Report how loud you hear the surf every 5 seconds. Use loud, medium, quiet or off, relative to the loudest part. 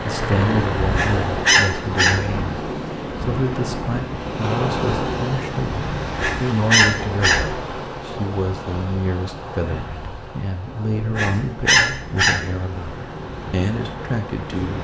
loud, loud, medium.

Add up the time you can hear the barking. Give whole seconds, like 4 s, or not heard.
4 s.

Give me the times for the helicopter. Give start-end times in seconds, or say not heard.
0.0-1.6.